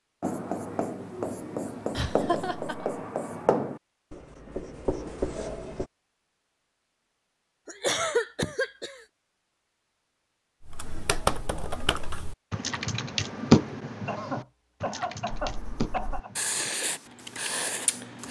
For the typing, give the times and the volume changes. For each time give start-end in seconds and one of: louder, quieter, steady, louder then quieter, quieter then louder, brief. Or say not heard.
10.6-18.2 louder then quieter.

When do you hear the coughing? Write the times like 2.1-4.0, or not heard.
1.9-3.0, 7.7-9.0, 14.1-16.3.